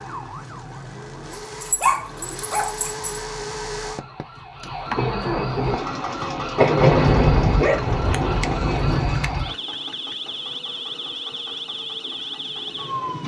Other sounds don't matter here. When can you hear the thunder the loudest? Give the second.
7 s.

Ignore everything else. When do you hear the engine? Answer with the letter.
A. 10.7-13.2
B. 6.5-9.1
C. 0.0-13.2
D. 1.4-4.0
C.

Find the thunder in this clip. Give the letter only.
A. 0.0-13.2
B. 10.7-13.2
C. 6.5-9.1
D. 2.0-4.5
C.